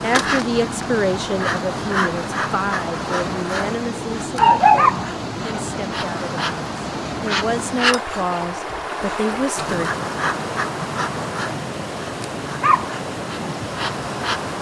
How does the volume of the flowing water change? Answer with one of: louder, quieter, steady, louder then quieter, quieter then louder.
steady.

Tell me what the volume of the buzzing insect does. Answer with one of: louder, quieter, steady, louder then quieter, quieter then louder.
steady.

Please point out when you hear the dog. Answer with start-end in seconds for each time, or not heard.
4.3-5.8.